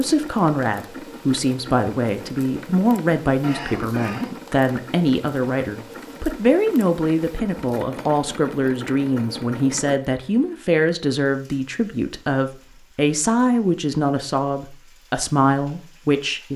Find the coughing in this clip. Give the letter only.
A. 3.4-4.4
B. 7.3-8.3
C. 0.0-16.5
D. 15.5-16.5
A.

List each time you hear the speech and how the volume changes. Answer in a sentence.
You can hear the speech from 0.0 to 16.5 s, at a steady volume.